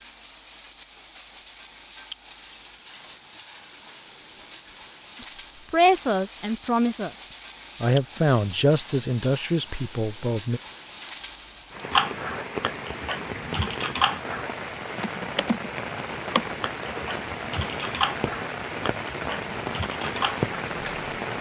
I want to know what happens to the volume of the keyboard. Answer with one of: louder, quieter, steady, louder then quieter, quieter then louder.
quieter.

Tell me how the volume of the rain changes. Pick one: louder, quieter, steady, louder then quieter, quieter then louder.
louder.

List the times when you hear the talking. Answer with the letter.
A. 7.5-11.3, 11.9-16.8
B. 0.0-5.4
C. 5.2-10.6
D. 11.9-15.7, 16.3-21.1
C.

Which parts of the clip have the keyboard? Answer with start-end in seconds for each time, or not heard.
11.9-15.7, 16.3-21.1.